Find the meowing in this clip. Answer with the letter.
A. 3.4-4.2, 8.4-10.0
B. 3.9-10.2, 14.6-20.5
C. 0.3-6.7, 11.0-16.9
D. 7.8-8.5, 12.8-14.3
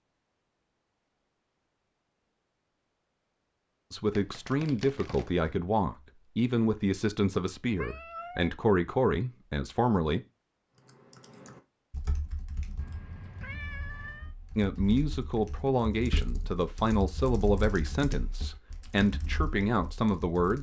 D.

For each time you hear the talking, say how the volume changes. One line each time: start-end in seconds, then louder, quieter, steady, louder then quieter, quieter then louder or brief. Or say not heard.
3.9-10.2 steady
14.6-20.5 steady.